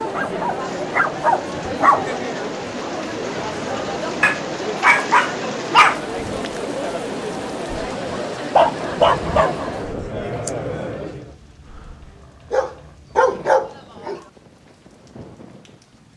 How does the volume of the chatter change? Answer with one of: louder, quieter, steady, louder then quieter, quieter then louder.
steady.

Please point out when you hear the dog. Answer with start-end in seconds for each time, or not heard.
0.1-2.2, 4.2-6.0, 8.6-10.5, 12.5-14.2.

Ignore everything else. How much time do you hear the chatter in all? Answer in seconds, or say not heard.
11 s.